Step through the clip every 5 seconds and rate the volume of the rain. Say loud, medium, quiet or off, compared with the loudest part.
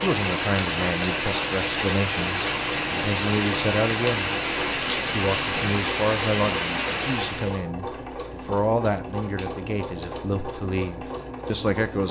loud, loud, off.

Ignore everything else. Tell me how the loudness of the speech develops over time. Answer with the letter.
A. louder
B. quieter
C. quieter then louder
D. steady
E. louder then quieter
D.